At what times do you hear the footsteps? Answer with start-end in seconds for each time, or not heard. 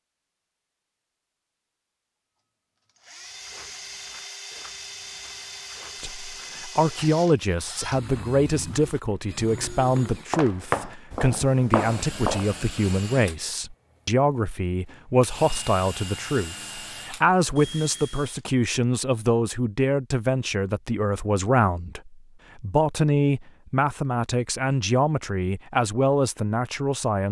3.2-12.8.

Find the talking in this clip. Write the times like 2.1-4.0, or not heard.
6.0-27.2.